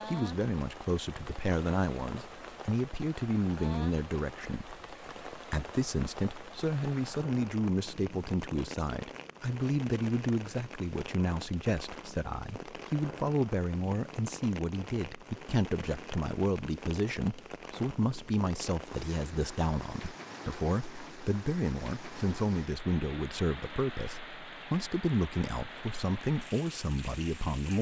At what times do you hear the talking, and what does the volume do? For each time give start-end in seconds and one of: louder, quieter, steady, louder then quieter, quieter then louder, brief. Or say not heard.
0.1-27.7 steady.